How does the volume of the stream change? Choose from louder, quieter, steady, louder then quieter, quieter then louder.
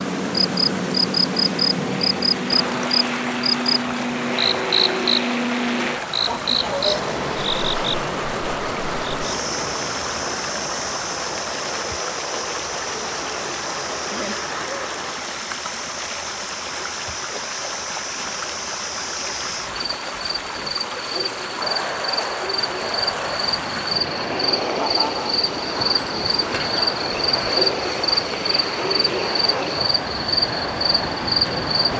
steady.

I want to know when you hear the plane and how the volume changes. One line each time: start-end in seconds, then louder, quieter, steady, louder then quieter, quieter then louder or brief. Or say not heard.
0.0-15.2 quieter
21.6-31.9 steady.